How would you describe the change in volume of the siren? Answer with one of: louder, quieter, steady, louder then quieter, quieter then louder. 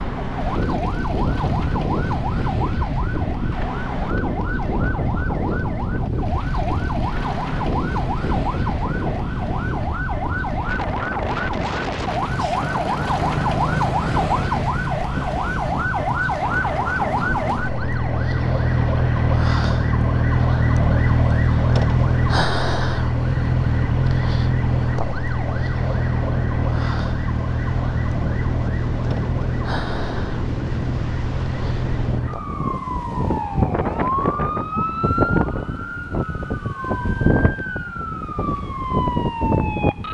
louder then quieter.